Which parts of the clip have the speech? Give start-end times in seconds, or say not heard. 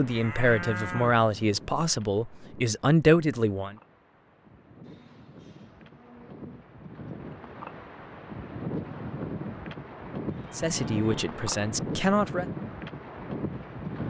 0.0-3.8, 10.6-12.4.